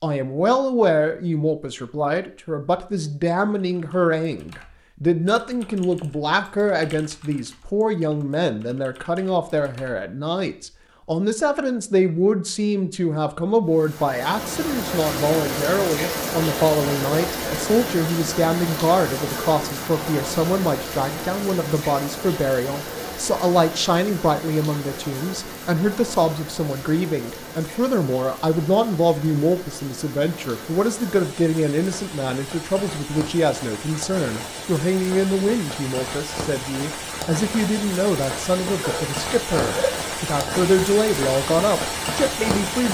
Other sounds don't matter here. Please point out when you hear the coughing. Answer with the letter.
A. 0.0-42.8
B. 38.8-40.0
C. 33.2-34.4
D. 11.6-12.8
B.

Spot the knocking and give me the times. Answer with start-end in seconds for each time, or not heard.
not heard.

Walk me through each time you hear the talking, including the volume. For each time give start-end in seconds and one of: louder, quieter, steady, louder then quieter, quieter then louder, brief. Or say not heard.
0.0-42.8 steady.